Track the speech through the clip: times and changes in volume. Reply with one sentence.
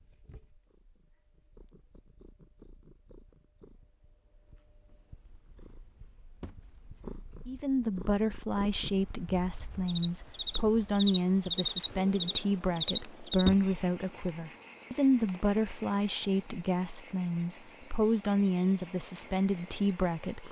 You can hear the speech from 7.5 to 20.4 s, at a steady volume.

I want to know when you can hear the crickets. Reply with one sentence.
The crickets can be heard from 8.4 to 20.4 s.